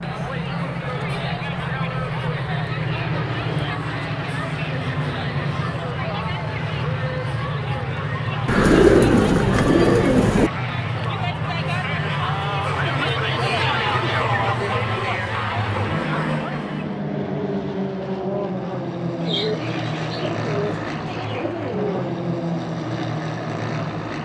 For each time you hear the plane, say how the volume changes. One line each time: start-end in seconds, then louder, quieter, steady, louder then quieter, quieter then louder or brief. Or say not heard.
0.0-24.2 steady.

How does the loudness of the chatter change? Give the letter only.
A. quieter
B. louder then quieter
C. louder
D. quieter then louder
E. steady
C.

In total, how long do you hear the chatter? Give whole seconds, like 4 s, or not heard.
17 s.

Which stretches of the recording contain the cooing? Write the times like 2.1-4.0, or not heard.
8.4-10.5, 19.2-21.9.